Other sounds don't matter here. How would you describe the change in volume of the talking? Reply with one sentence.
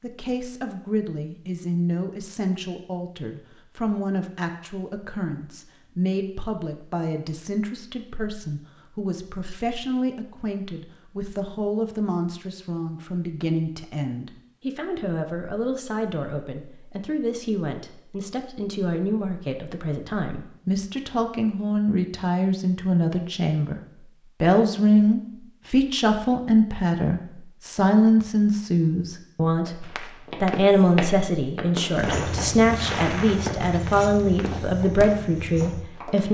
The loudness of the talking goes up.